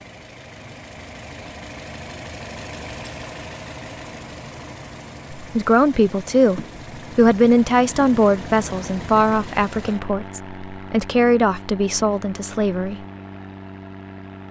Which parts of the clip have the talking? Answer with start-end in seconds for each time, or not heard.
5.3-12.9.